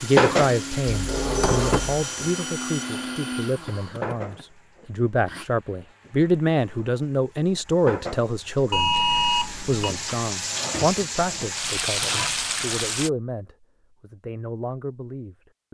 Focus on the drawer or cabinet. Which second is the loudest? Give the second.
2 s.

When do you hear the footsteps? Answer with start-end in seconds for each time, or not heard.
not heard.